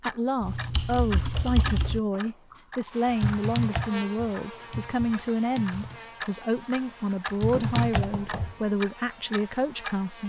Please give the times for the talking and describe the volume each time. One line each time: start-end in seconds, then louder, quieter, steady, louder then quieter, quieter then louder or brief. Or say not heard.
0.0-10.2 steady.